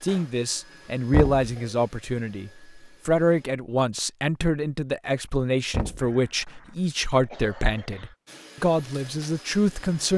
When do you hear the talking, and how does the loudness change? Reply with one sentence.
You can hear the talking from 0.0 to 10.1 s, at a steady volume.